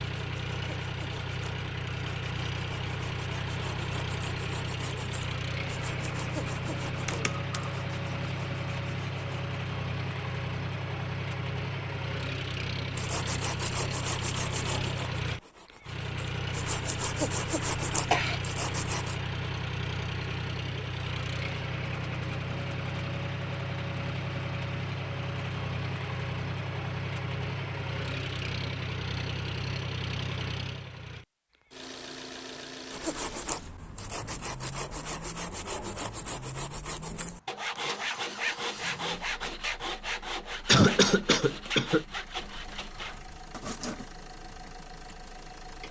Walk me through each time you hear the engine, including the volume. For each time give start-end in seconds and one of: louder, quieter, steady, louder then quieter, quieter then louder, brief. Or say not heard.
0.0-45.8 quieter.